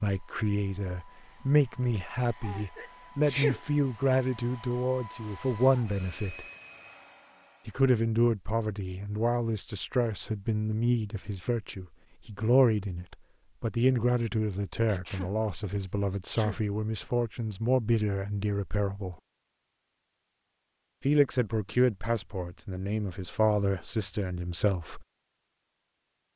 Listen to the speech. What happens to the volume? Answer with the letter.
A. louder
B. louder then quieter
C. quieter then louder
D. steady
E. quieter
D.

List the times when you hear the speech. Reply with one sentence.
The speech can be heard from 0.0 to 6.5 s, from 7.7 to 19.1 s and from 21.1 to 25.1 s.